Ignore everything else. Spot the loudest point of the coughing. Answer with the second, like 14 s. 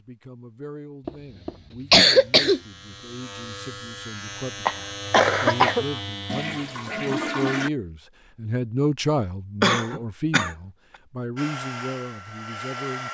2 s.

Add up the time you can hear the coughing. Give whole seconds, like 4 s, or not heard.
4 s.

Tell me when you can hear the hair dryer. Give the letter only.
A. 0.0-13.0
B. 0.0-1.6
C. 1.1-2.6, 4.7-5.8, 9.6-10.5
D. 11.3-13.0
D.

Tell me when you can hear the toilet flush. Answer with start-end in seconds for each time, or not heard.
6.2-7.7.